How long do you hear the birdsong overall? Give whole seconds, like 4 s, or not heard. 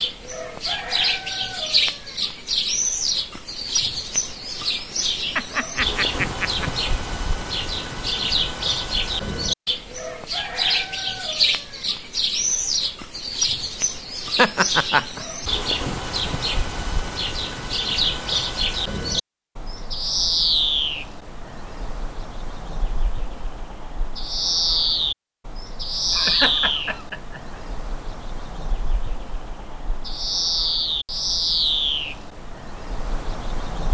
34 s.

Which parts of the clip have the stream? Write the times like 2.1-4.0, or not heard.
not heard.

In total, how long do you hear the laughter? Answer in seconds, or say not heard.
4 s.